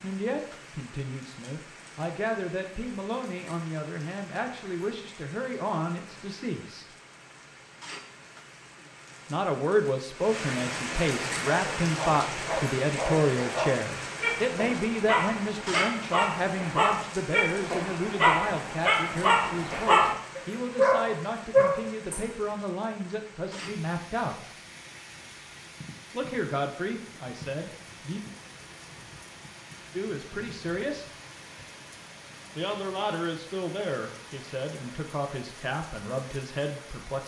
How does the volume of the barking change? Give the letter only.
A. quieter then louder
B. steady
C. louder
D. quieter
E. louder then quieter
C.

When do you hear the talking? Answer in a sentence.
You can hear the talking from 0.0 to 6.8 s, from 9.3 to 24.5 s, from 26.1 to 28.2 s, from 29.9 to 31.1 s and from 32.5 to 37.2 s.